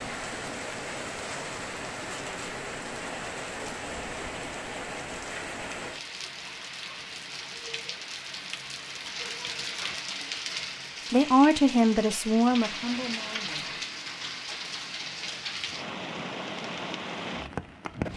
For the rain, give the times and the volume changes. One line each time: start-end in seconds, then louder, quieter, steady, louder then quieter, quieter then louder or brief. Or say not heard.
0.0-18.1 steady.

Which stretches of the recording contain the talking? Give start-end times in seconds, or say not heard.
11.1-13.7.